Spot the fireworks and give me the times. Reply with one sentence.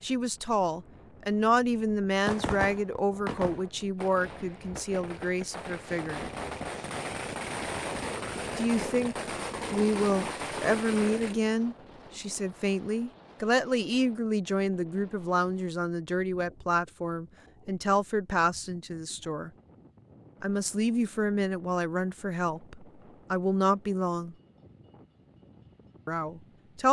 You can hear the fireworks from 2.2 to 11.3 s.